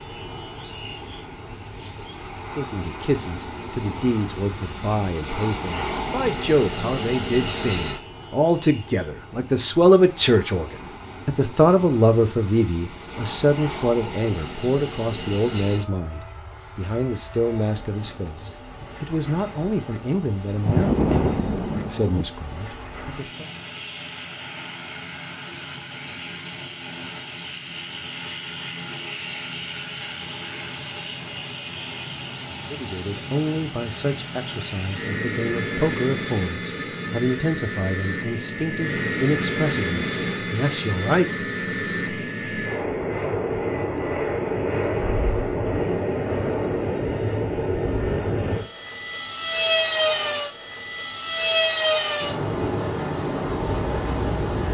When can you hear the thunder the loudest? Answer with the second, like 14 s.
21 s.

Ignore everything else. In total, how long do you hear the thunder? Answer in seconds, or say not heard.
2 s.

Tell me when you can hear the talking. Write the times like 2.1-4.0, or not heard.
2.5-23.4, 32.7-41.3.